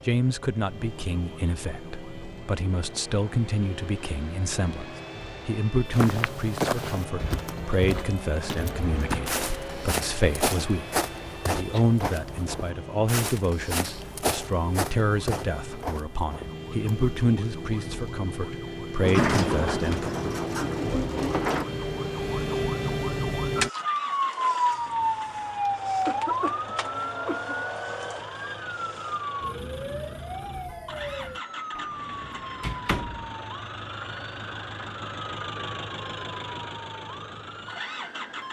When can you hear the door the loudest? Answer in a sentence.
The loudest moment of the door is at 19 seconds.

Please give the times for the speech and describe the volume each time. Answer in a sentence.
The speech can be heard from 0.1 to 20.1 s, at a steady volume.